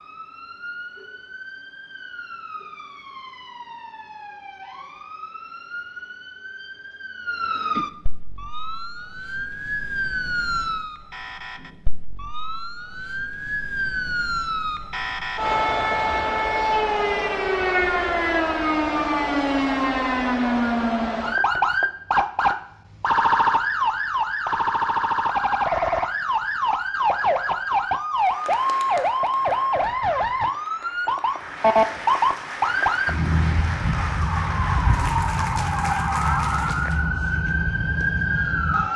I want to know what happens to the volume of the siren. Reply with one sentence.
The loudness of the siren goes up.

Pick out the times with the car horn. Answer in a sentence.
You can't hear the car horn here.